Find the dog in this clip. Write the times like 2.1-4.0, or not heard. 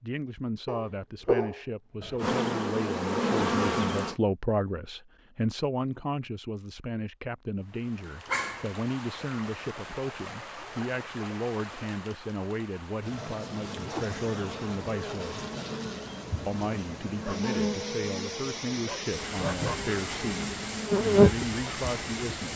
0.7-2.2, 8.2-8.8, 17.2-19.8.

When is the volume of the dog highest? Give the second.
1 s.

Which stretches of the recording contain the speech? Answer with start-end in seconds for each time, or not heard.
0.0-15.4, 16.4-22.5.